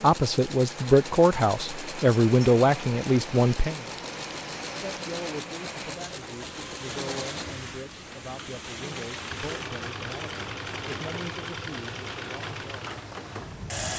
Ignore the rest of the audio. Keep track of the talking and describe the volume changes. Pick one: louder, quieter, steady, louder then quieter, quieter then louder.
quieter.